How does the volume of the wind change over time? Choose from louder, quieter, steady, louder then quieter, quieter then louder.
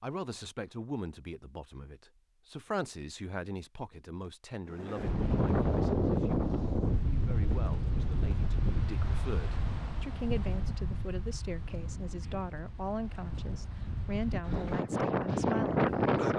quieter then louder.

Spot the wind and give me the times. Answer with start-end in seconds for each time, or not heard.
4.7-16.3.